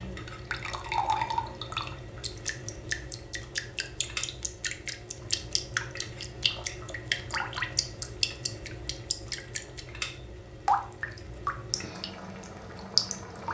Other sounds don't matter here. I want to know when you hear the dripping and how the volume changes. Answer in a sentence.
You can hear the dripping from 0.0 to 9.8 s, at a steady volume; and briefly from 10.7 to 13.4 s.